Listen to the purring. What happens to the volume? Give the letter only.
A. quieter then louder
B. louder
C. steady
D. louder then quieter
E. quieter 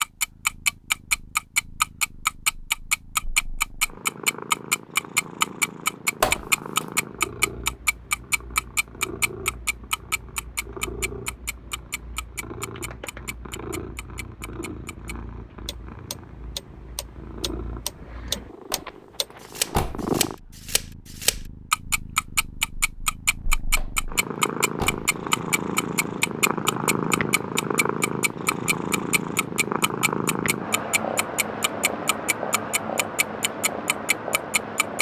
B.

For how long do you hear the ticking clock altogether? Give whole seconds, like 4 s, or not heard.
35 s.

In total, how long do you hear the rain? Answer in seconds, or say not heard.
not heard.